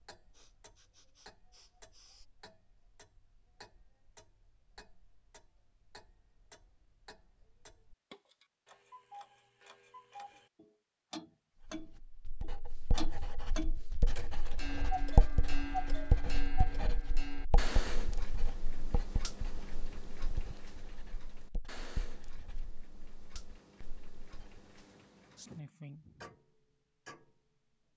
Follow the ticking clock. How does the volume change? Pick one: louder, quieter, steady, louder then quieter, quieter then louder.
louder then quieter.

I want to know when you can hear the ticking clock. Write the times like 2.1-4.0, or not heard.
0.0-27.9.